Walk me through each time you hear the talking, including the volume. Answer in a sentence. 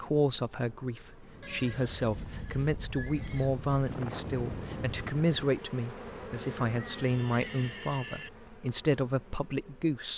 The talking can be heard from 0.0 to 10.1 s, at a steady volume.